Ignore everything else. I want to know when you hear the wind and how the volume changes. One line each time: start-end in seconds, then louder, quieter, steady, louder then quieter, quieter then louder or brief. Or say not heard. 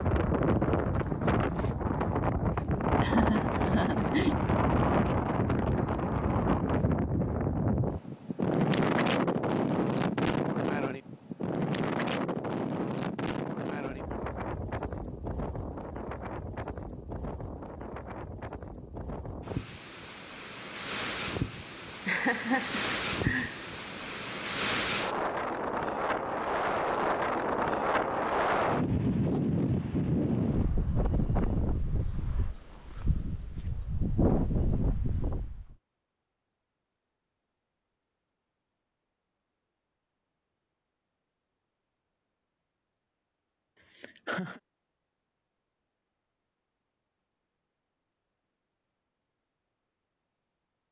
0.0-35.8 quieter then louder.